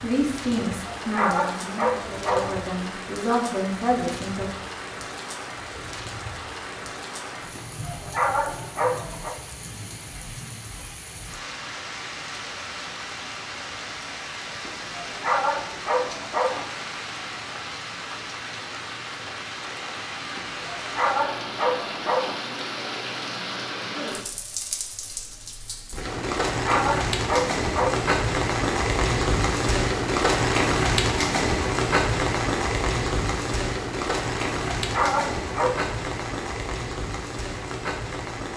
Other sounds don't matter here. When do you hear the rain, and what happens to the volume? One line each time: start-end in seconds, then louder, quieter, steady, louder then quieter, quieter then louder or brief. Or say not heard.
0.0-38.5 louder.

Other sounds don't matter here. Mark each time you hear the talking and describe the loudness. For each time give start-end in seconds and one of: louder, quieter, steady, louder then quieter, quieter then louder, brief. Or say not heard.
0.0-4.5 quieter then louder.